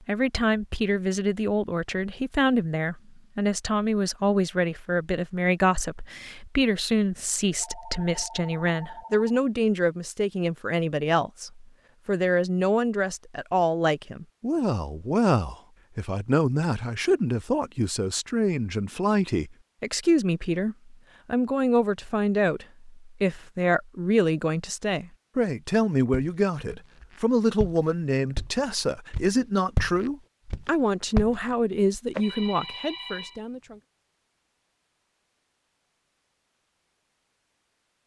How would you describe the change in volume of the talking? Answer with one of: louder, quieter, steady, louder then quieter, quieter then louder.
steady.